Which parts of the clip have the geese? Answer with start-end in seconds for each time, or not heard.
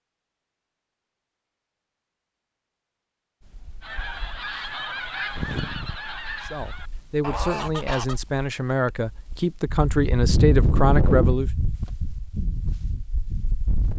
3.8-8.2.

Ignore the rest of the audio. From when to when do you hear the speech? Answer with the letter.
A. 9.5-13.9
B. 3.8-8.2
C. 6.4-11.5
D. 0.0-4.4
C.